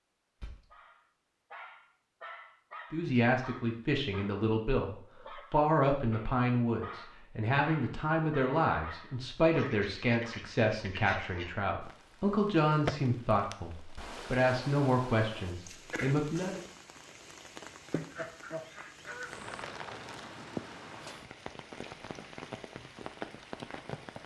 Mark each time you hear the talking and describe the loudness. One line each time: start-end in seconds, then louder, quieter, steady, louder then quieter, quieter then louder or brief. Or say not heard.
2.9-16.6 steady.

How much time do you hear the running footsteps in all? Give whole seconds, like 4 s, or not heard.
not heard.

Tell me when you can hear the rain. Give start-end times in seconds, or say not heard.
11.8-24.2.